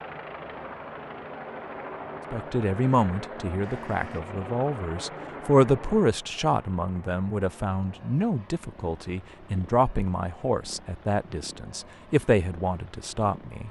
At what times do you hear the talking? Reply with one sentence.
You can hear the talking from 2.3 to 13.6 s.